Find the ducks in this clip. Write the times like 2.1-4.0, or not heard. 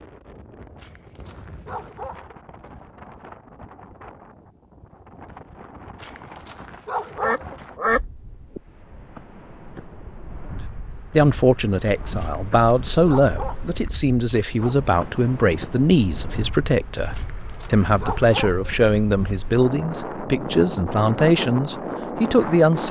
7.2-8.6.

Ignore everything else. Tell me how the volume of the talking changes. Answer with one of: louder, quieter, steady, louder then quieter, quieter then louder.
steady.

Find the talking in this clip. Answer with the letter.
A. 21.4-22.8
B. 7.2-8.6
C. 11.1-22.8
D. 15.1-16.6
C.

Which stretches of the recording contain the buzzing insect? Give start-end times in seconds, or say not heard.
not heard.